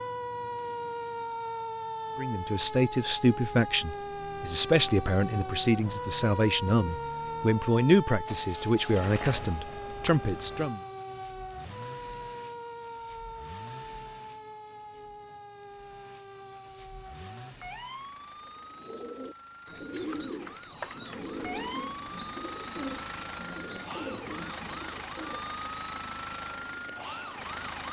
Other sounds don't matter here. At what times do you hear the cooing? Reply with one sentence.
The cooing can be heard from 18.4 to 25.6 s.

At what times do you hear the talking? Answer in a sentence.
The talking can be heard from 2.1 to 10.8 s.